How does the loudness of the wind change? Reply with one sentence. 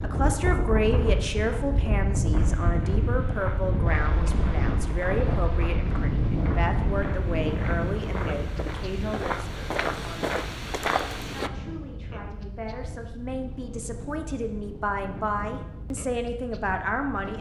The loudness of the wind goes down.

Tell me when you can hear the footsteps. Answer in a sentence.
The footsteps can be heard from 2.3 to 11.5 s.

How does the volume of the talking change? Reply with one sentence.
The volume of the talking goes down, then up.